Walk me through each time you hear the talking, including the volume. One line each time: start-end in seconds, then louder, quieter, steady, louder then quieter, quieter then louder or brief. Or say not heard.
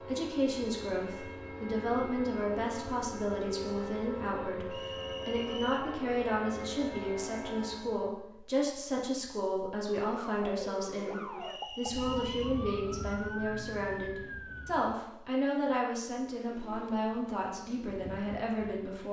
0.0-19.0 steady.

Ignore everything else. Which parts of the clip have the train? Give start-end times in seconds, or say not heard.
0.0-8.1.